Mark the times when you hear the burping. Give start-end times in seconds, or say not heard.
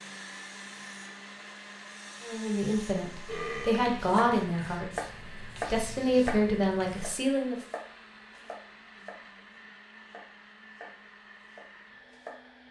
3.2-4.1.